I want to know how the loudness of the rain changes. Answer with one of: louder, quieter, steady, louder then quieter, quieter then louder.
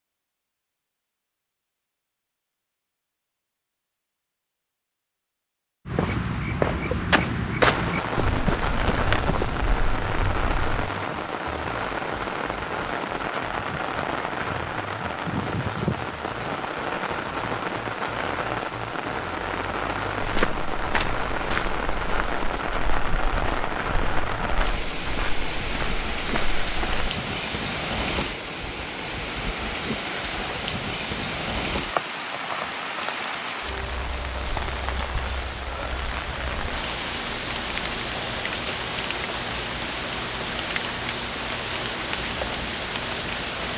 steady.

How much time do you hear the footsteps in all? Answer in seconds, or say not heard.
12 s.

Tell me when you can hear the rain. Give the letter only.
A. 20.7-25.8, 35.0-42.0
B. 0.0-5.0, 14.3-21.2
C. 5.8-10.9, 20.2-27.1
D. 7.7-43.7
D.